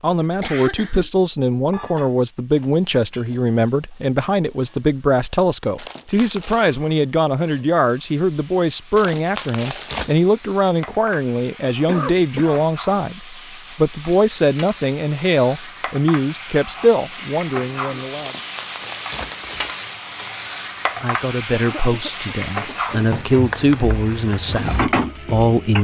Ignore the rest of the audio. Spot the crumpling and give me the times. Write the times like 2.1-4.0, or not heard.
5.8-6.8, 8.9-10.2, 18.1-19.8.